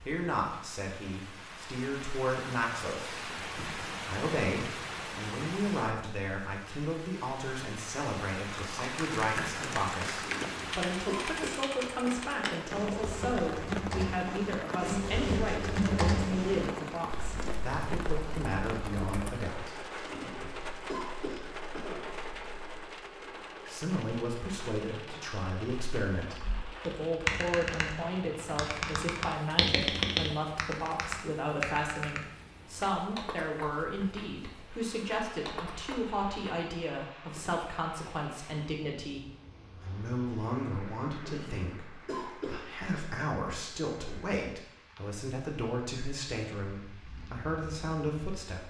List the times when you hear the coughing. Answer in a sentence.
You can hear the coughing from 10.2 to 11.7 s, from 20.1 to 22.1 s and from 41.2 to 43.1 s.